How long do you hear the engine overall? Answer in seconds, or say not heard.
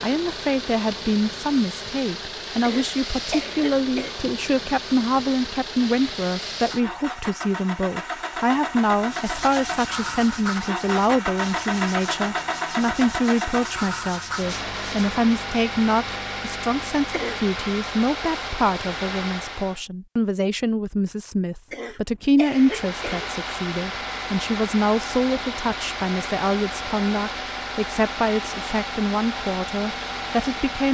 28 s.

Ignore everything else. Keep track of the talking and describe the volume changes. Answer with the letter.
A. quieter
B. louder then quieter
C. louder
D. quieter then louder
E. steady
E.